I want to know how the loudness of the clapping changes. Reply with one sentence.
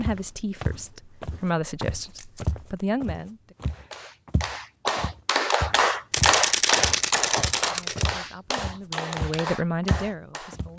The loudness of the clapping goes up, then down.